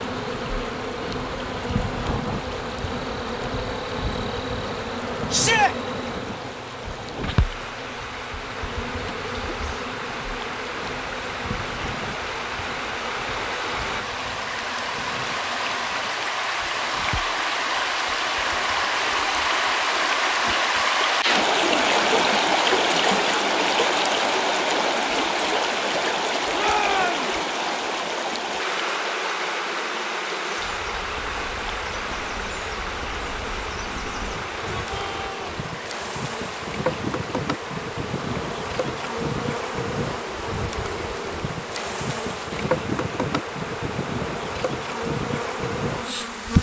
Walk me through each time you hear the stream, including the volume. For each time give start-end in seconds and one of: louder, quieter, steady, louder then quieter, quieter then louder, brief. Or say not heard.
0.0-46.5 louder then quieter.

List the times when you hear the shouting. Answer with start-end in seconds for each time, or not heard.
5.3-5.8, 26.5-27.3, 34.3-35.5.